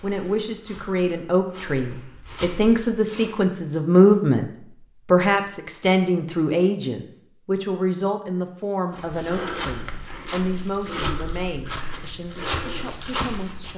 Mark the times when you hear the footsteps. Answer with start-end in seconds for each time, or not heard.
0.0-3.5, 8.9-13.7.